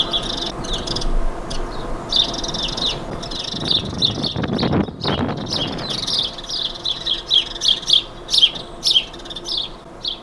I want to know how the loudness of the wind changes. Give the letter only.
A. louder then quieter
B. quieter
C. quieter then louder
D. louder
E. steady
D.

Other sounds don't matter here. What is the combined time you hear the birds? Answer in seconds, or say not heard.
10 s.